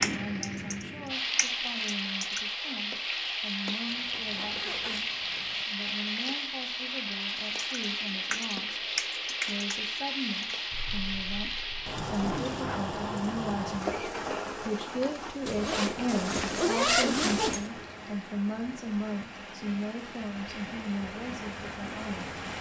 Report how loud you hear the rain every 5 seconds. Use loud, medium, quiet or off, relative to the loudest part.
loud, loud, loud, medium, medium.